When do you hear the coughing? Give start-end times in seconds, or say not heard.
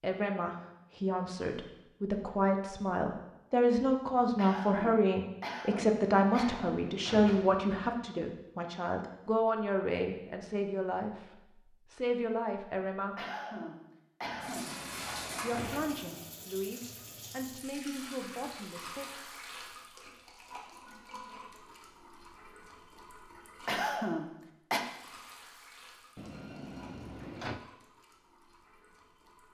4.3-6.8, 13.2-14.8, 23.6-24.9.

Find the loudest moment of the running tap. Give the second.
15 s.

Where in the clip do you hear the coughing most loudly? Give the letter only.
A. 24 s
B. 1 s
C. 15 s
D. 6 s
A.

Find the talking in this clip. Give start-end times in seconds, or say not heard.
0.0-11.2, 11.9-13.2, 15.4-19.1.